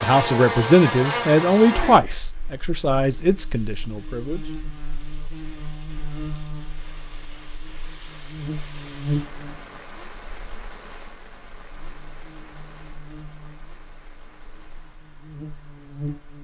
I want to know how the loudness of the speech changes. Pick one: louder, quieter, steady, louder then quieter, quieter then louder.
quieter.